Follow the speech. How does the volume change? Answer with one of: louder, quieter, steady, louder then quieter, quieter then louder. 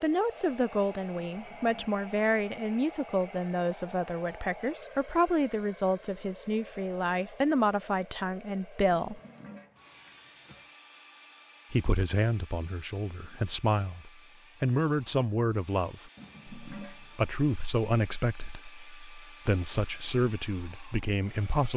steady.